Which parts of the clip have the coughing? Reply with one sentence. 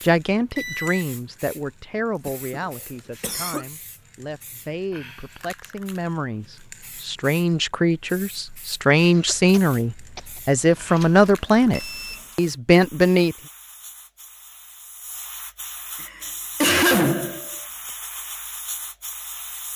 The coughing can be heard from 2.2 to 3.6 s, from 9.2 to 10.5 s and from 16.0 to 17.5 s.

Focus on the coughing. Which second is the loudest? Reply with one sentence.
The loudest moment of the coughing is at 17 seconds.